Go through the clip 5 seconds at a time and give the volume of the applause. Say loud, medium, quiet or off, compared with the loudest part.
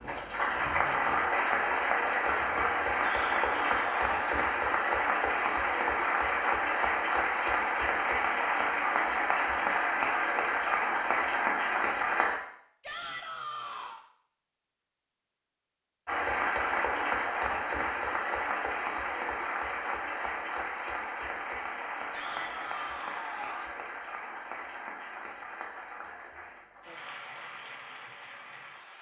loud, loud, loud, loud, medium, quiet.